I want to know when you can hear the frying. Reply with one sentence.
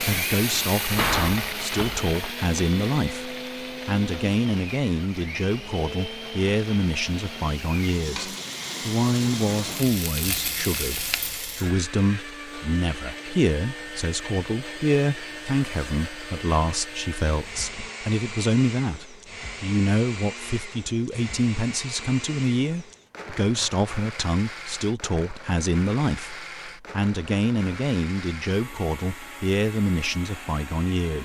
You can hear the frying from 0.0 to 11.7 s.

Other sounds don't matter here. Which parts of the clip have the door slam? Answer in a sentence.
You can hear the door slam from 0.5 to 2.0 s.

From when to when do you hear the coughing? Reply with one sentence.
You can't hear the coughing here.